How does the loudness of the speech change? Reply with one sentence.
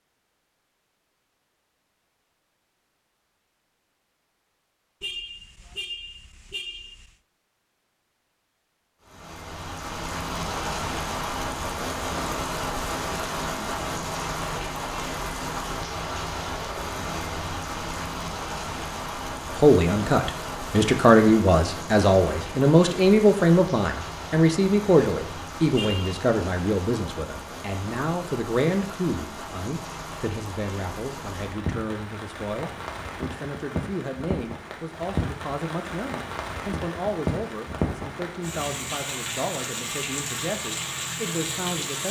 The volume of the speech goes down.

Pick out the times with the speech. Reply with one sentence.
You can hear the speech from 19.5 to 42.0 s.